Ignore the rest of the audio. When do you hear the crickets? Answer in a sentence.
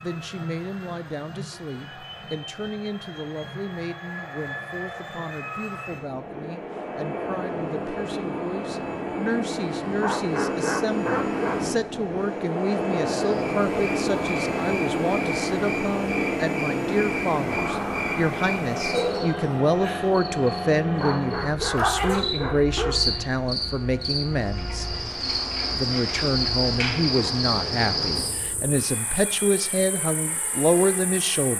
The crickets can be heard from 13.3 to 31.5 s.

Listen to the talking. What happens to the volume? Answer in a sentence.
The volume of the talking goes up.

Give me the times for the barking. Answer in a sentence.
The barking can be heard from 10.0 to 11.6 s and from 20.9 to 22.9 s.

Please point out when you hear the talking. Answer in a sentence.
You can hear the talking from 0.0 to 24.9 s and from 25.8 to 31.5 s.